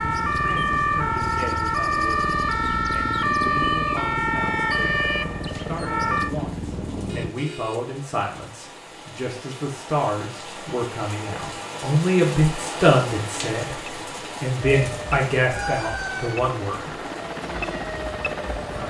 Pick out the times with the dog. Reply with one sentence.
The dog can't be heard in this clip.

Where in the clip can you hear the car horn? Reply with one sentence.
You can hear the car horn from 7.0 to 7.9 s.